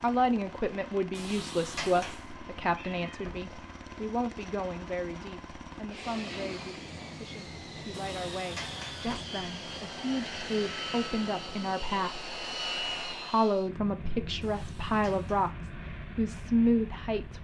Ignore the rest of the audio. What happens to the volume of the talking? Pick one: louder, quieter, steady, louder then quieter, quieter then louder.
quieter then louder.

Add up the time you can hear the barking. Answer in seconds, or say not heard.
not heard.